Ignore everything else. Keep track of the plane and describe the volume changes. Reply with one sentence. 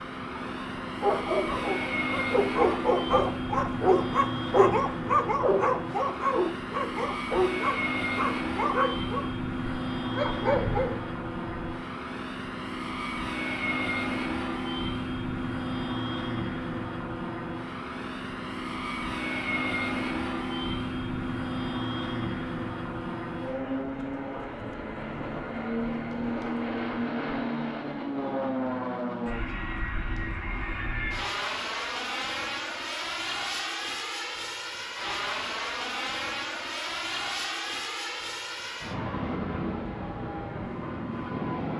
The volume of the plane stays about the same.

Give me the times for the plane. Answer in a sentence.
The plane can be heard from 0.0 to 41.7 s.